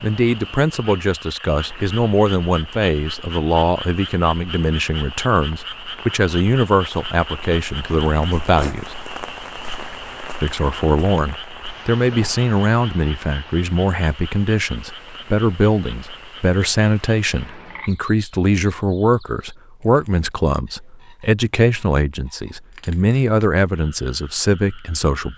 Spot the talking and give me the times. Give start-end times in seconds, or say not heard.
0.0-8.9, 10.4-25.3.